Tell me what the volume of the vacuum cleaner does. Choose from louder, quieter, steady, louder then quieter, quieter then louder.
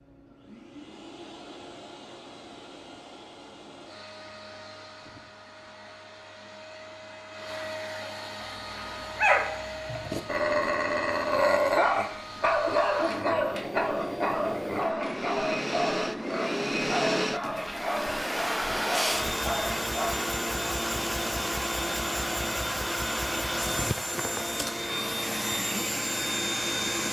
louder.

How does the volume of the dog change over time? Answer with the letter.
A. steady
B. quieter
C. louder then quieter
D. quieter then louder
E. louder
B.